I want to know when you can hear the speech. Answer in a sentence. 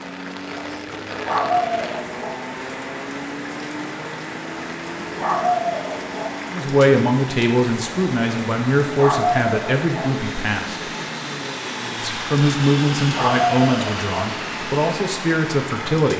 You can hear the speech from 6.5 to 10.9 s and from 12.0 to 16.1 s.